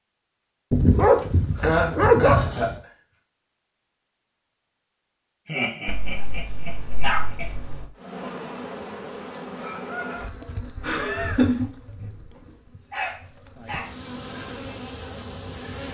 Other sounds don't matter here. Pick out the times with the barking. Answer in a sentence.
The barking can be heard from 0.7 to 2.8 s, from 5.8 to 7.9 s and from 12.4 to 13.9 s.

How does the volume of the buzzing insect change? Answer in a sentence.
The loudness of the buzzing insect goes down, then up.